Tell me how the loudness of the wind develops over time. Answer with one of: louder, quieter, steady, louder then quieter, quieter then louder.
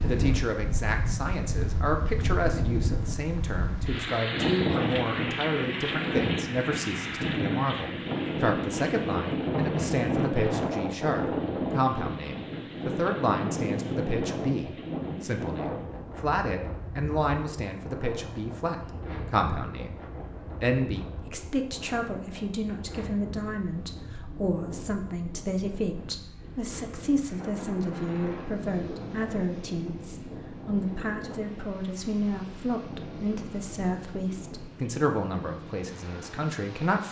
quieter.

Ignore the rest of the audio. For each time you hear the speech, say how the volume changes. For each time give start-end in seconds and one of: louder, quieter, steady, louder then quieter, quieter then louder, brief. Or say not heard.
0.0-37.0 steady.